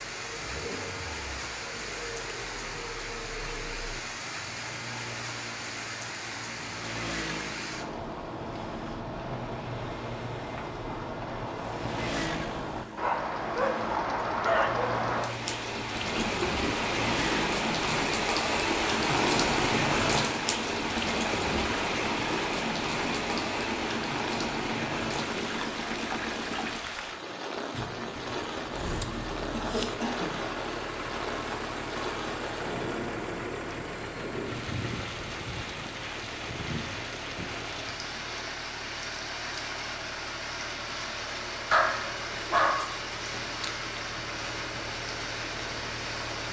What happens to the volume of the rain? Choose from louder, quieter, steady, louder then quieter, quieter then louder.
louder then quieter.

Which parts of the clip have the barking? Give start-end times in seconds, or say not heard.
12.9-14.9, 41.7-43.0.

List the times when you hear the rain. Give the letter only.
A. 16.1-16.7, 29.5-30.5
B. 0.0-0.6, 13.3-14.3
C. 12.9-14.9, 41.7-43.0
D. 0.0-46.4
D.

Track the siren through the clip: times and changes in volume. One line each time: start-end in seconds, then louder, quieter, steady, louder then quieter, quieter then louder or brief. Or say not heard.
not heard.